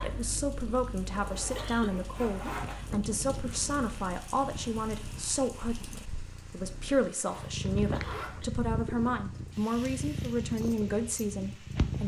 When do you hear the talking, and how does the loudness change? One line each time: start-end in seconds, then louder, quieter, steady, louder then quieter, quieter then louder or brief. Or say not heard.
0.0-12.0 steady.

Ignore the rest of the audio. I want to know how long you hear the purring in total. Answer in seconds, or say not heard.
12 s.